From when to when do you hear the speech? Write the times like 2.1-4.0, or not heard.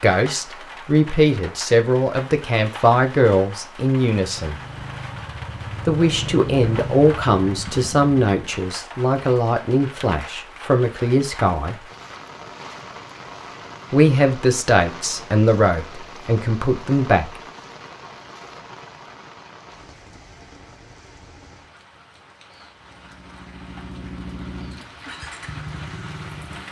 0.0-4.5, 5.8-11.8, 13.9-17.4.